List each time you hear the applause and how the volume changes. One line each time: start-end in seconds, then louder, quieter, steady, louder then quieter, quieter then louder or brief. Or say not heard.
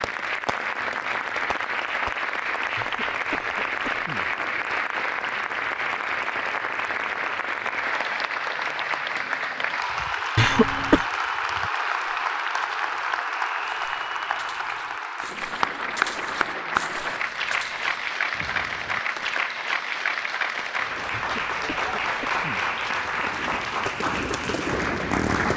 0.0-25.5 steady.